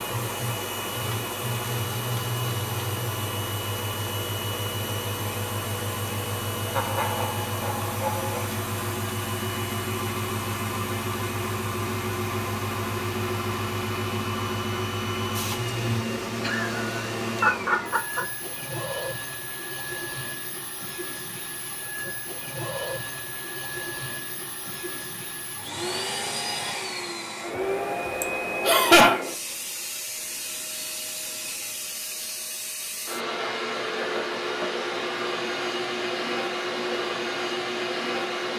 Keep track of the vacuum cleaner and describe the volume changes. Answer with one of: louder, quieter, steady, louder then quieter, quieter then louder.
steady.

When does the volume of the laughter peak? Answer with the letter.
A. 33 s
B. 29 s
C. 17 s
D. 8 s
B.